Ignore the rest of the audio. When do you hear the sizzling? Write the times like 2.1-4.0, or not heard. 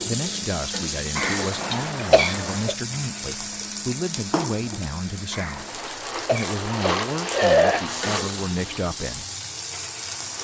0.0-10.3.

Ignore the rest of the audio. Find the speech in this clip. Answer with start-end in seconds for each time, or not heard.
0.1-9.2.